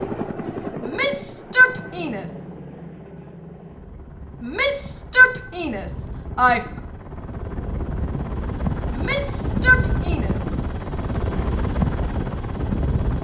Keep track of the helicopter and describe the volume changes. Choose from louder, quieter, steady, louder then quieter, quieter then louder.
quieter then louder.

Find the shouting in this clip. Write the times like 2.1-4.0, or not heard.
0.8-2.2, 4.4-6.7, 8.9-10.3.